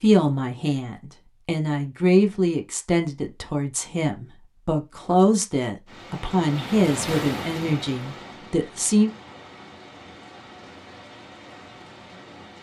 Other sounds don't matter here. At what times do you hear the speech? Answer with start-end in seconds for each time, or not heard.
0.0-9.1.